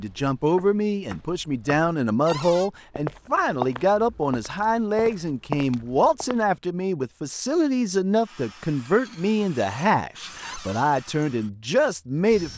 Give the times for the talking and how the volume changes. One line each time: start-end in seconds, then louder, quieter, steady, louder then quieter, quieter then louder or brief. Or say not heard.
0.0-12.5 steady.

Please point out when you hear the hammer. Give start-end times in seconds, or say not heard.
not heard.